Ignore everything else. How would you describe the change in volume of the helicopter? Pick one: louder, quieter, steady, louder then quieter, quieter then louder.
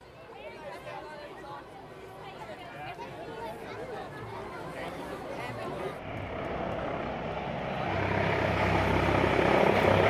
louder.